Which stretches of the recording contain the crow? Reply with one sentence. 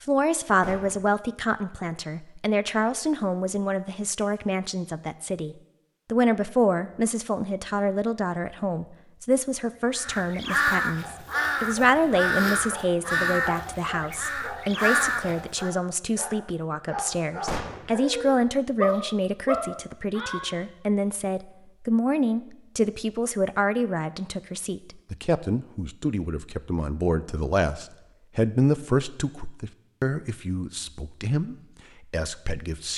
The crow can be heard from 9.6 to 15.7 s.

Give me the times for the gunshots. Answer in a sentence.
You can hear the gunshots from 0.6 to 1.1 s and from 17.4 to 17.9 s.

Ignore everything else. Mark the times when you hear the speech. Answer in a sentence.
The speech can be heard from 0.0 to 32.9 s.